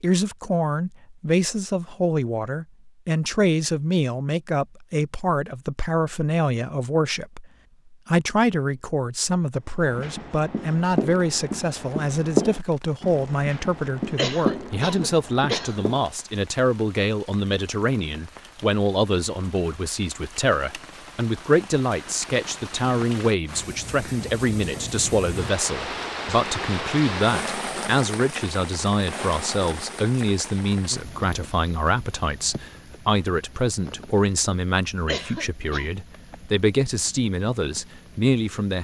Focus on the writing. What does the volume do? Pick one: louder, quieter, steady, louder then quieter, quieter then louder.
louder then quieter.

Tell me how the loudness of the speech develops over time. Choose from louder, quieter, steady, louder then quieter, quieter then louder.
steady.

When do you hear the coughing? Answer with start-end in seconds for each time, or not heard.
14.2-15.8, 35.0-35.9.